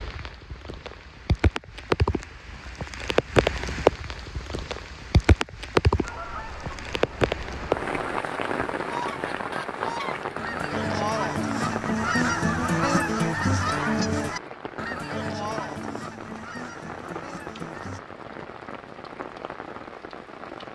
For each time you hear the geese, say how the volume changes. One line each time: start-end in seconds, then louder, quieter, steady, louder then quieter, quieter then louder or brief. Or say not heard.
6.0-18.0 louder then quieter.